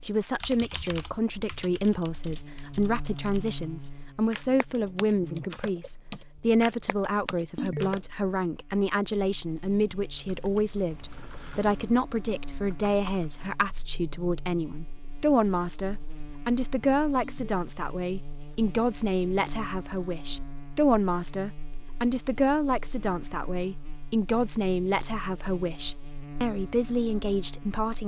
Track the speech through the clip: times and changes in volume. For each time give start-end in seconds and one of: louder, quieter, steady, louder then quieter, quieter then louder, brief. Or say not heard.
0.0-28.0 steady.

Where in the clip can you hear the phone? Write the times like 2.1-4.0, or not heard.
7.5-8.0, 17.2-17.6.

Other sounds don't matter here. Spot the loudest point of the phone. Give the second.
8 s.